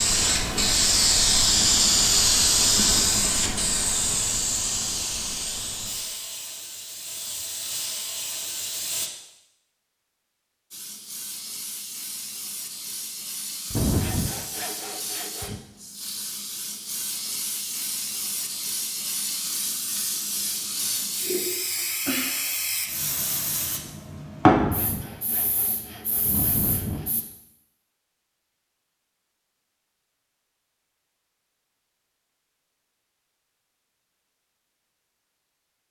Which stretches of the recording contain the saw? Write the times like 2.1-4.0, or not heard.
13.7-15.6, 24.5-27.1.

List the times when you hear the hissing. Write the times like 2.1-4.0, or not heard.
0.0-9.1, 10.7-27.2.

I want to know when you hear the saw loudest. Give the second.
14 s.